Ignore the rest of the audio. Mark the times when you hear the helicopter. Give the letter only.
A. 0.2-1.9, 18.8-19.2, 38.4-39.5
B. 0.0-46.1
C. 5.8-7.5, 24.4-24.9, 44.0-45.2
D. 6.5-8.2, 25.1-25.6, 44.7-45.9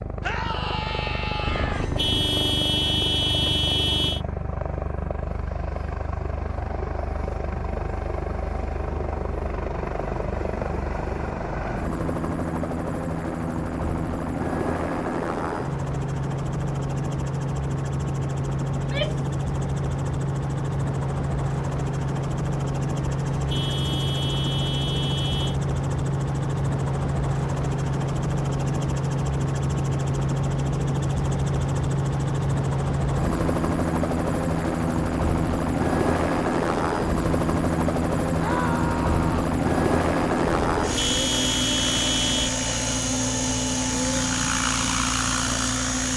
B.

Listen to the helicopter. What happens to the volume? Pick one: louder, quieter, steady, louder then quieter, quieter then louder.
louder.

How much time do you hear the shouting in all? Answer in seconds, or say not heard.
3 s.